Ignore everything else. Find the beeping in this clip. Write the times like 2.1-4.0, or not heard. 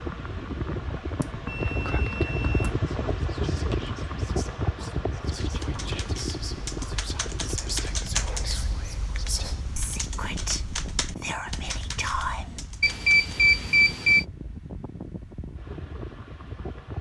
1.2-2.8, 12.8-14.2.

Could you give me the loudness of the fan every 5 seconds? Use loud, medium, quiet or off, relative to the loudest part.
loud, medium, medium, medium.